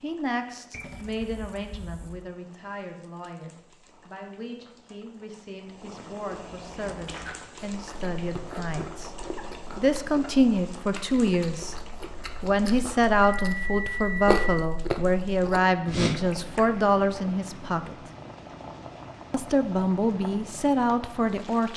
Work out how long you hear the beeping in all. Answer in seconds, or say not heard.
3 s.